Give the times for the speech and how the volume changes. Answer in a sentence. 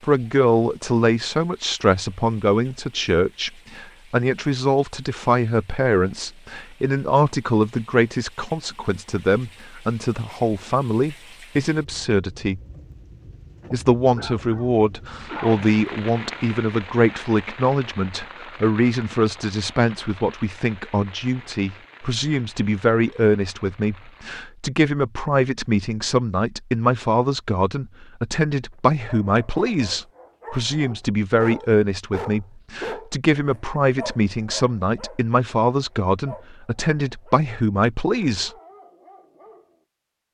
You can hear the speech from 0.0 to 12.6 s, at a steady volume; and from 13.7 to 38.5 s, at a steady volume.